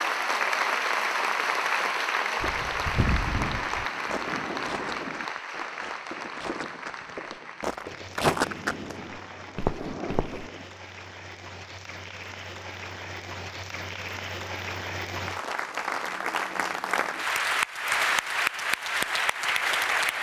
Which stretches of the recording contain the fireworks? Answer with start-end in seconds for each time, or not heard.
3.3-10.7.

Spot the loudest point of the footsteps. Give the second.
8 s.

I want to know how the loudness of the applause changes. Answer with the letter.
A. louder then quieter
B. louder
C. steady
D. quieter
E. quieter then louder
E.